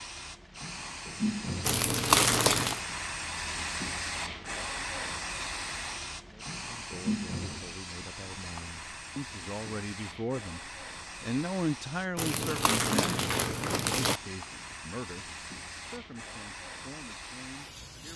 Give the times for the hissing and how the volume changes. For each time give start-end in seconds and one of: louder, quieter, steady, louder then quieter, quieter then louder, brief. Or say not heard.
0.0-18.1 quieter.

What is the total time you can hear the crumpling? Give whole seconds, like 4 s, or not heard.
3 s.